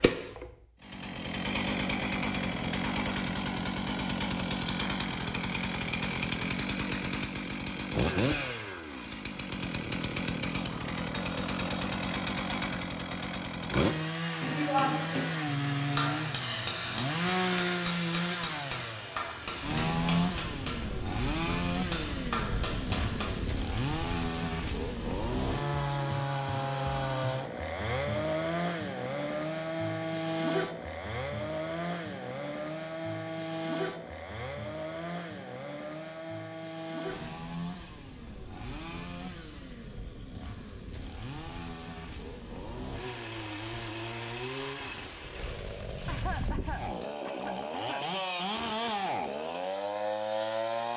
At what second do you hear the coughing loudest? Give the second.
46 s.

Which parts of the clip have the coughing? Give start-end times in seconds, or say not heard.
45.6-48.0.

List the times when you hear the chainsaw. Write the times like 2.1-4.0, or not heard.
0.0-50.9.